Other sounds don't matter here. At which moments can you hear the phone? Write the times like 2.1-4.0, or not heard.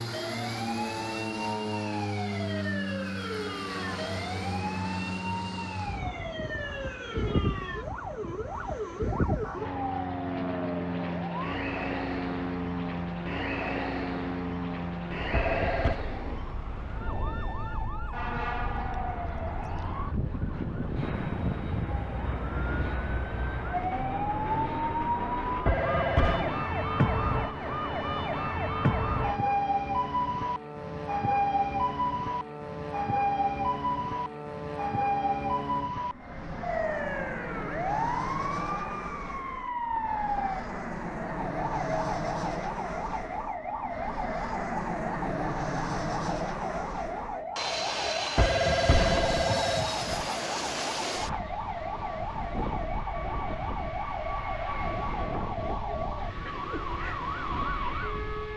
15.3-16.0, 25.6-26.5, 48.4-50.2.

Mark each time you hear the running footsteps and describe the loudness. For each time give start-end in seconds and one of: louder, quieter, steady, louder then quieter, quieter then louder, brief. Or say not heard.
not heard.